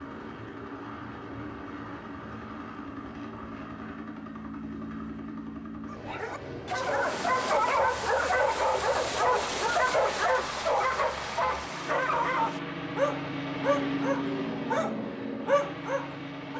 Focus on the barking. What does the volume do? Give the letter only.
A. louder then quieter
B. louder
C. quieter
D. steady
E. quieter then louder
D.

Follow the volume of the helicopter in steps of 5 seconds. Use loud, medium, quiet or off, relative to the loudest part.
medium, medium, loud, loud.